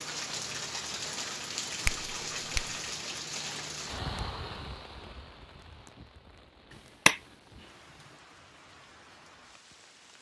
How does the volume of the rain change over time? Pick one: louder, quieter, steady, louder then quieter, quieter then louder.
quieter.